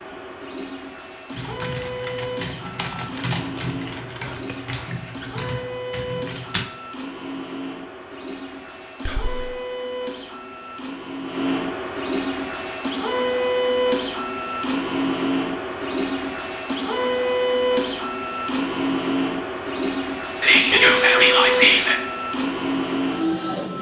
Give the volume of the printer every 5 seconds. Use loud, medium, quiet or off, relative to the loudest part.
medium, medium, loud, loud, loud.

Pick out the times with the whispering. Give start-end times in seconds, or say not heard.
4.2-5.7, 9.1-9.5, 20.4-22.0.